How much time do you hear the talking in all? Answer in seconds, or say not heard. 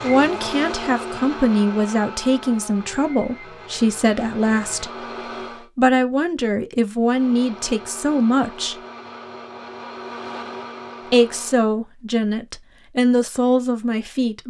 12 s.